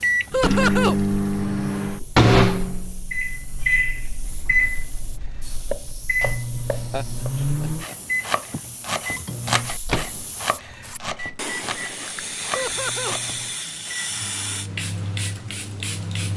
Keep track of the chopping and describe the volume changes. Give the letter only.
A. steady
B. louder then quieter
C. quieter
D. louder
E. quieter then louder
B.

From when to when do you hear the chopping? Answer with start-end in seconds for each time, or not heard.
5.7-13.3.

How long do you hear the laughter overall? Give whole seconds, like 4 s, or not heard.
3 s.